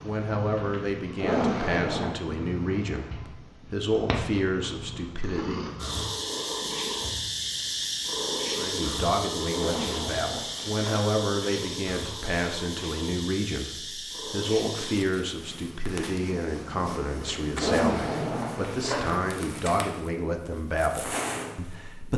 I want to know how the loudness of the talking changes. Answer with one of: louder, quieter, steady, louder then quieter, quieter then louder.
steady.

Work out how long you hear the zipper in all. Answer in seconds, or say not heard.
4 s.